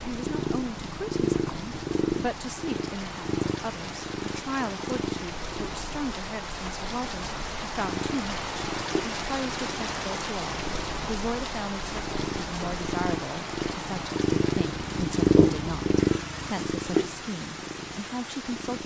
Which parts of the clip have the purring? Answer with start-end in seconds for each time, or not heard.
0.1-6.0, 7.8-18.8.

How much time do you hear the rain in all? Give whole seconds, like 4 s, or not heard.
19 s.